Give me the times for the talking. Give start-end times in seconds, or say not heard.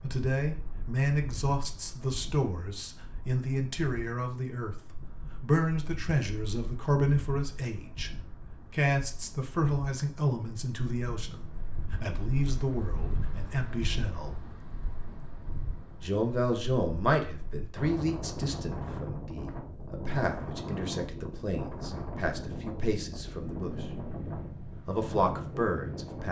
0.0-8.1, 8.7-14.4, 16.0-23.9, 24.9-26.2.